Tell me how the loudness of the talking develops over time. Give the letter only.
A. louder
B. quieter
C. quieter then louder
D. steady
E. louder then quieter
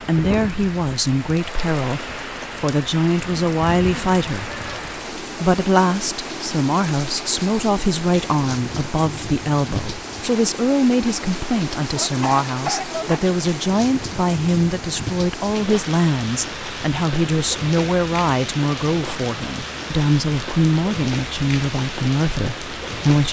D.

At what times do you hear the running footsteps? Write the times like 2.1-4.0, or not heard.
not heard.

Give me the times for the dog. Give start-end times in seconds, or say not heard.
11.9-13.3.